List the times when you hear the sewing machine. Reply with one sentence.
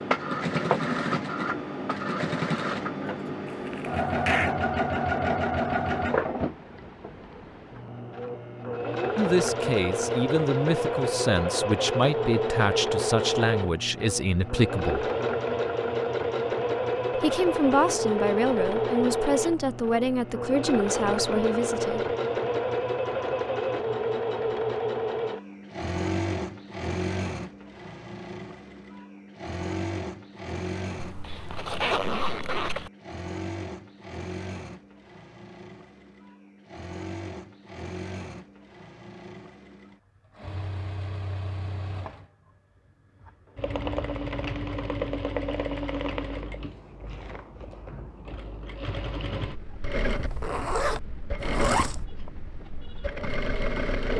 The sewing machine can be heard from 0.0 to 42.3 s and from 43.2 to 54.1 s.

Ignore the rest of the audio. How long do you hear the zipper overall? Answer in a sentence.
The zipper can be heard for 5 seconds in total.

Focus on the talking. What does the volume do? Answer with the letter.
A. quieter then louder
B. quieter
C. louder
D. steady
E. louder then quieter
D.